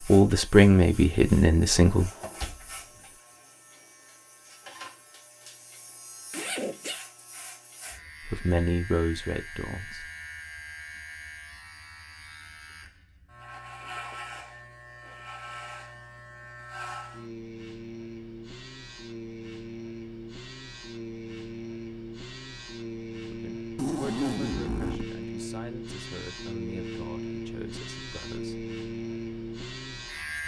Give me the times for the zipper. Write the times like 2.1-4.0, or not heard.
6.3-7.0, 13.5-15.3, 23.8-25.1.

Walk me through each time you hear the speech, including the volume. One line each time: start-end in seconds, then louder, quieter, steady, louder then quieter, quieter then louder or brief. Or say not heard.
0.1-2.1 brief
8.2-10.1 brief
23.2-28.7 quieter.